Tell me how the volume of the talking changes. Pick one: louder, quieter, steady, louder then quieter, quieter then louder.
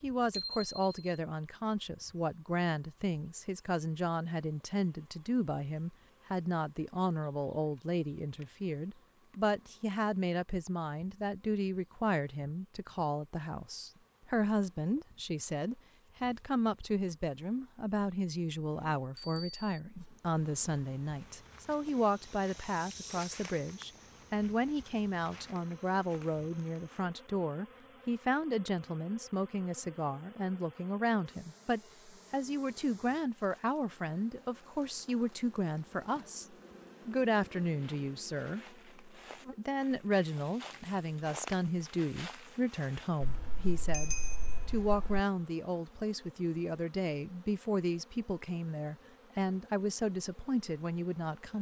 steady.